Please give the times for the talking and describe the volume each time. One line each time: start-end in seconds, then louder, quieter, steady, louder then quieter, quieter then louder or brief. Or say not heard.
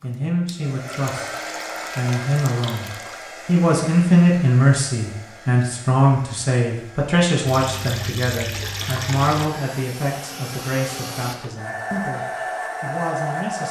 0.0-1.4 brief
1.9-13.6 quieter.